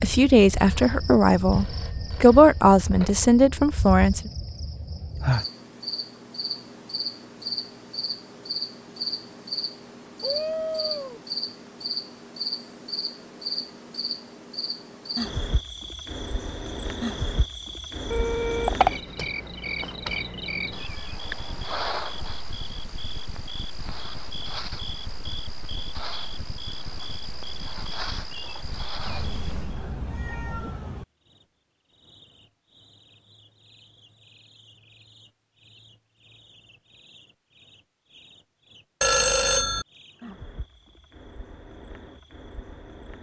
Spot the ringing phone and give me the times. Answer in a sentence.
The ringing phone can be heard from 0.7 to 3.2 s, from 18.1 to 19.0 s and from 39.0 to 39.9 s.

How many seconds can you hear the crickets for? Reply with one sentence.
The crickets can be heard for 43 seconds in total.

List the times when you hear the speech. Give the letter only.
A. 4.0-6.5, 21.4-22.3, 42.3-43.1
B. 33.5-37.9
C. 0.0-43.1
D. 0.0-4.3
D.